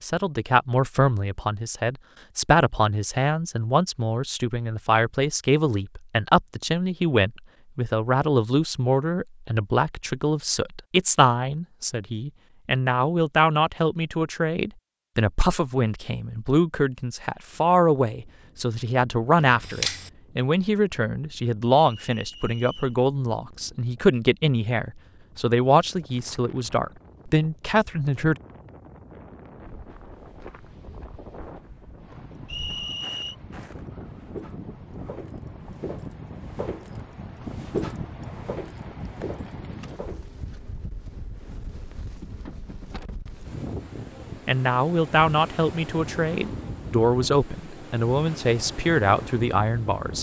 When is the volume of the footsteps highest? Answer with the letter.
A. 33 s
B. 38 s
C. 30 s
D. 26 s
B.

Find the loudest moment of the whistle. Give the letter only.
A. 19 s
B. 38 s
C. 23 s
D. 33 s
D.